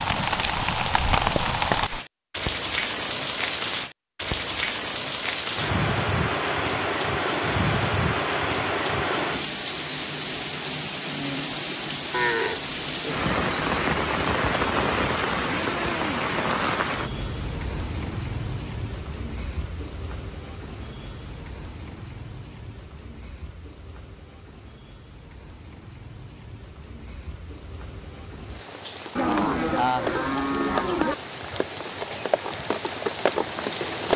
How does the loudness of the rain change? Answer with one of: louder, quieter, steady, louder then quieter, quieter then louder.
quieter then louder.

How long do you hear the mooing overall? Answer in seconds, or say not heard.
4 s.